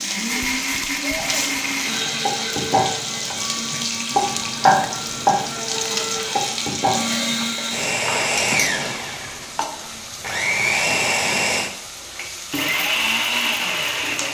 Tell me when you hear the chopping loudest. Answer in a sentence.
The volume of the chopping peaks at 5 seconds.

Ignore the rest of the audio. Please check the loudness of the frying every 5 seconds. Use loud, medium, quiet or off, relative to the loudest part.
loud, loud, medium.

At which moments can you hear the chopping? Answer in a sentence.
You can hear the chopping from 1.1 to 8.3 s.